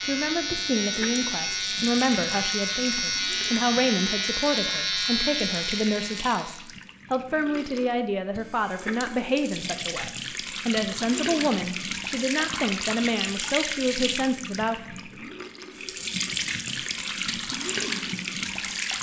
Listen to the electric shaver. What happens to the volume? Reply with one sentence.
The loudness of the electric shaver stays about the same.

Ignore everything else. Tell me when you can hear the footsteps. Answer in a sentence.
The footsteps can't be heard in this clip.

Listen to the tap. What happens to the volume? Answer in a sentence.
The loudness of the tap goes up.